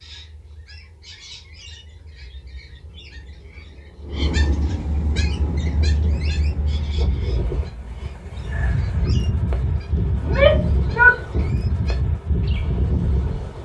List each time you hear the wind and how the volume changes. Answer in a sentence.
The wind can be heard from 5.0 to 13.6 s, getting louder.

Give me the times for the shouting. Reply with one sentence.
You can hear the shouting from 10.2 to 11.2 s.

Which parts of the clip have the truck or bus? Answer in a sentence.
The truck or bus can't be heard in this clip.